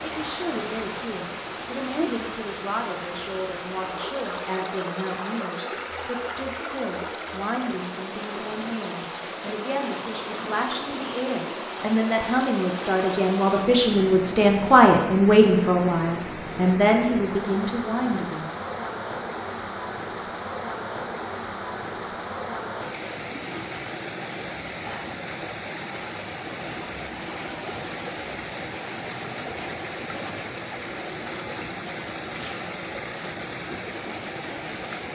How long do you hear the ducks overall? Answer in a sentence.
You can't hear the ducks here.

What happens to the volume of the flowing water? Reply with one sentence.
The loudness of the flowing water stays about the same.